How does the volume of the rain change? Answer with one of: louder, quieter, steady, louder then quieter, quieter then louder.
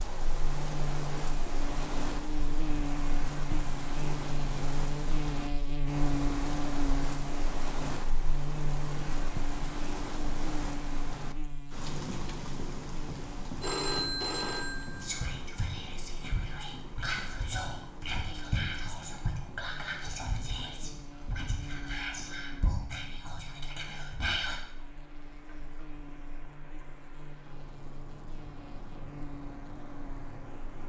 quieter.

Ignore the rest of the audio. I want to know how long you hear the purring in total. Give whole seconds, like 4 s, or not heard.
not heard.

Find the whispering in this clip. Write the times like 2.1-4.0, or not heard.
15.0-24.6.